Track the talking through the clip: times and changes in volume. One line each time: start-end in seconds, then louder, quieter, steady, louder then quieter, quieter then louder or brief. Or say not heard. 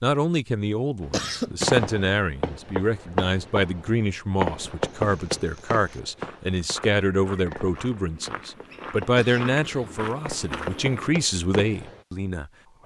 0.0-12.8 steady.